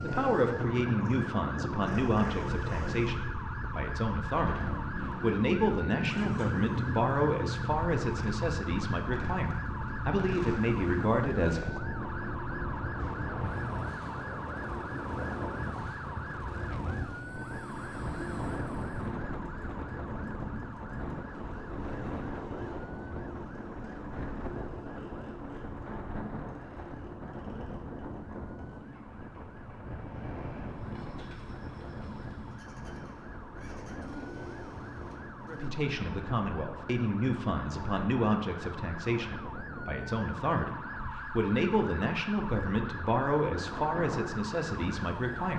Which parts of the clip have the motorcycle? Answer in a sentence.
You can hear the motorcycle from 0.0 to 35.7 s.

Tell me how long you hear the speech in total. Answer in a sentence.
The speech can be heard for 21 seconds in total.